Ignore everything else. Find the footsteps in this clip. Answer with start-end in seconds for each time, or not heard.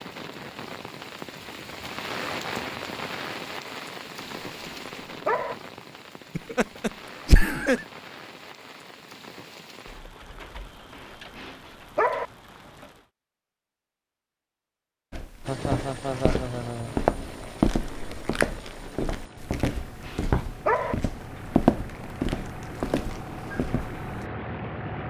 15.1-24.2.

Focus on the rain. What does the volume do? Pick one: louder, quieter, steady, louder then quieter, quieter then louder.
quieter.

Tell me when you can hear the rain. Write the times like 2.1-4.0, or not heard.
0.0-13.1.